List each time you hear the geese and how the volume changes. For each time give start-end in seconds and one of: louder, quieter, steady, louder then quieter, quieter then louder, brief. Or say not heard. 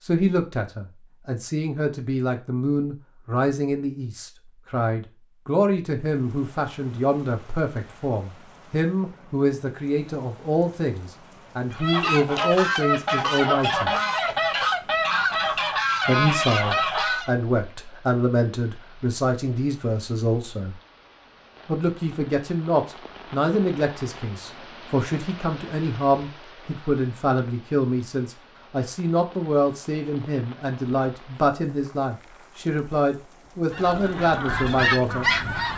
11.7-17.3 steady
33.7-35.7 brief.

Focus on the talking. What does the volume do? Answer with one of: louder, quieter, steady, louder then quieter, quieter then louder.
steady.